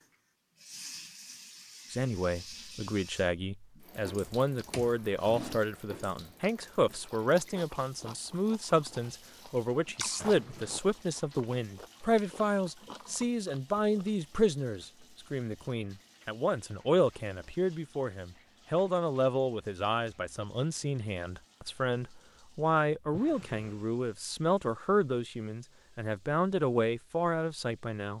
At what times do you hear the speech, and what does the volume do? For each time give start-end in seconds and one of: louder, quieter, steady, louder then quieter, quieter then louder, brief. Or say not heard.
1.9-28.1 steady.